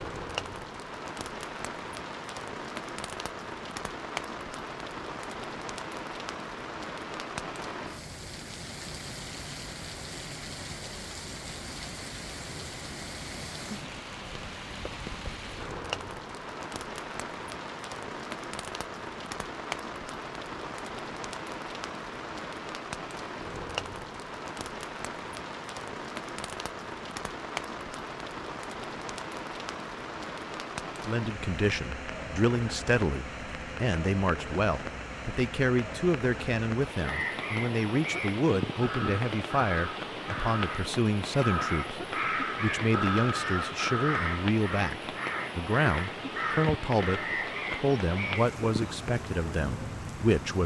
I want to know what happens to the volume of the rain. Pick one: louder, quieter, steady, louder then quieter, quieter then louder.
steady.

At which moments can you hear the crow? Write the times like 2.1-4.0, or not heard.
37.0-49.0.